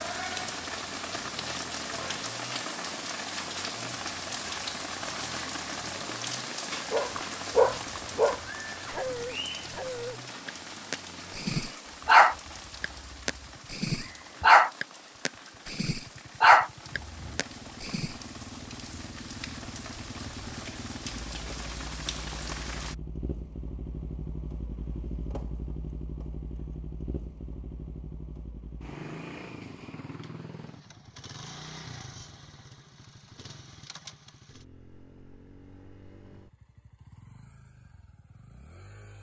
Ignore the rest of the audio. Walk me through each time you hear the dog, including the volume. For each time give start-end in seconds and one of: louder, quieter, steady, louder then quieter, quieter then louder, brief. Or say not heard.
6.9-18.1 quieter then louder.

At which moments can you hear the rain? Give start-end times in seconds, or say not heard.
0.0-22.9.